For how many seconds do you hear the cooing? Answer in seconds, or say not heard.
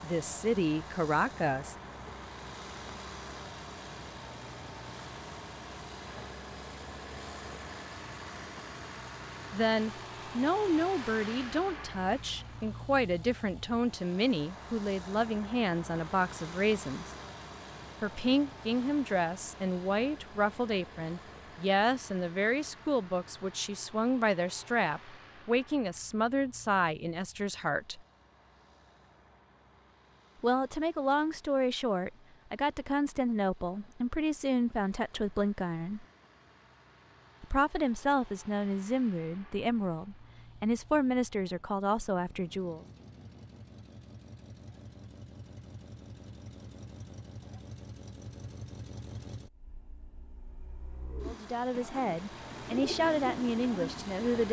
3 s.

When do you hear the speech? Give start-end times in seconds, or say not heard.
0.0-2.1, 9.5-17.1, 18.0-28.0, 30.4-36.0, 37.4-42.9, 51.2-54.4.